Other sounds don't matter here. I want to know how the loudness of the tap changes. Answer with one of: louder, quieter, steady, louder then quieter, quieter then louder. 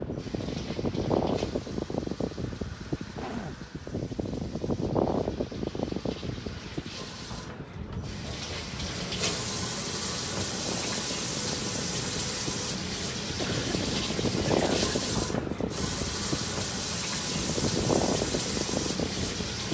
louder.